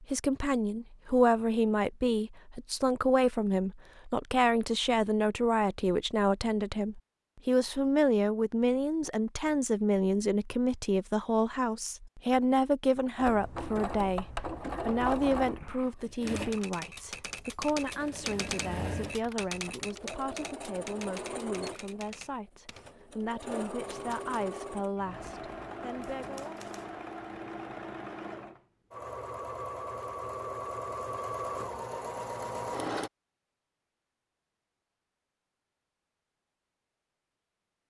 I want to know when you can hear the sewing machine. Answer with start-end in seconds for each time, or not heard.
13.2-33.1.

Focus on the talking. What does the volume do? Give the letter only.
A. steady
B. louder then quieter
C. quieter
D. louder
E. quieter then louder
C.